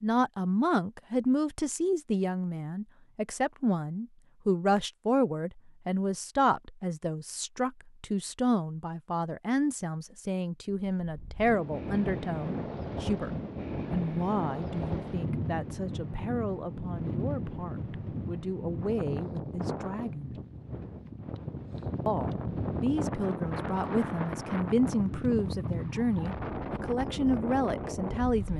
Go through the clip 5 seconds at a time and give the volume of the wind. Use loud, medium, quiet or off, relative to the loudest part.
off, off, loud, loud, loud, loud.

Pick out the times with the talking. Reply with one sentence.
The talking can be heard from 0.0 to 13.3 s, from 13.9 to 20.4 s and from 22.1 to 28.5 s.